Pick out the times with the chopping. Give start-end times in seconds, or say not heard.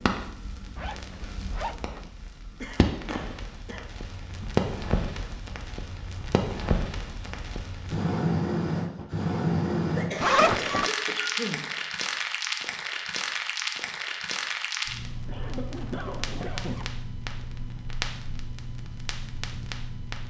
not heard.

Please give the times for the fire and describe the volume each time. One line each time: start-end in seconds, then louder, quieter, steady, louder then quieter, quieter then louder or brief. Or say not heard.
0.0-20.2 louder then quieter.